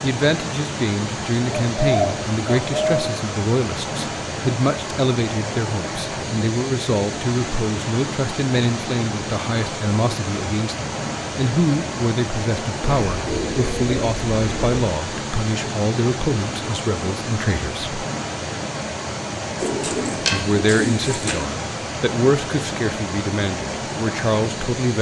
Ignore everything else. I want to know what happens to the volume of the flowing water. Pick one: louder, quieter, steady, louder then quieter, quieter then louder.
steady.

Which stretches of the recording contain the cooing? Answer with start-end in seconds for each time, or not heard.
1.5-3.0, 12.8-14.8, 19.6-21.4.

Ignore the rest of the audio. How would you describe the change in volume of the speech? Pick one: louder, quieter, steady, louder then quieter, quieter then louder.
steady.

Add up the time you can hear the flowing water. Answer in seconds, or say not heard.
25 s.